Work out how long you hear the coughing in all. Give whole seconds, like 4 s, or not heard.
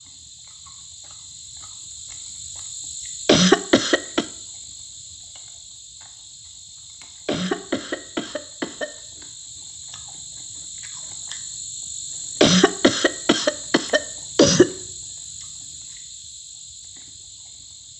5 s.